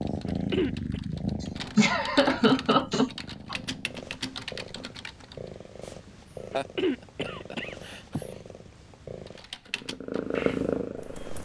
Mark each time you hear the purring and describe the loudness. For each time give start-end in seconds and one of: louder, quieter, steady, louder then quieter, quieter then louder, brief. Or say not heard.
0.0-11.4 quieter then louder.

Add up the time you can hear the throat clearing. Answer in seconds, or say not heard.
2 s.